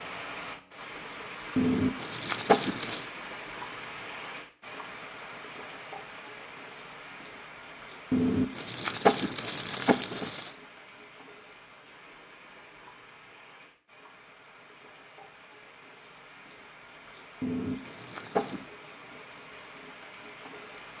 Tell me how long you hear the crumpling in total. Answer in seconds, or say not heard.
5 s.